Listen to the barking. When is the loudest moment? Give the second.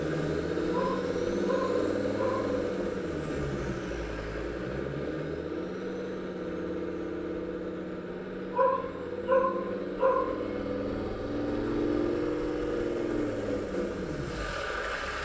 9 s.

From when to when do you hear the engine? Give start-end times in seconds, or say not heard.
0.0-15.2.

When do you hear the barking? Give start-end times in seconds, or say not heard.
0.7-2.5, 8.5-10.3.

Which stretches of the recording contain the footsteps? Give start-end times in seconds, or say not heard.
not heard.